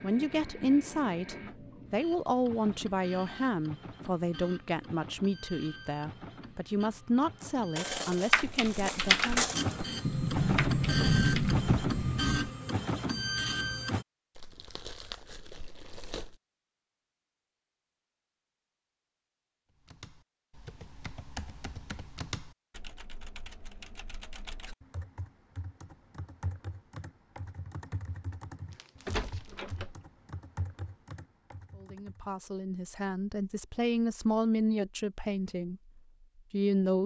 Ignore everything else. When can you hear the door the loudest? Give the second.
11 s.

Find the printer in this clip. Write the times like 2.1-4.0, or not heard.
0.0-14.1.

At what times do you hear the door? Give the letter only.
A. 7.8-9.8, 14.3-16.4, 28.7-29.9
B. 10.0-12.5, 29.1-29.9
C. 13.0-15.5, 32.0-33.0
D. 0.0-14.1
B.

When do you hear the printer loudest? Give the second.
11 s.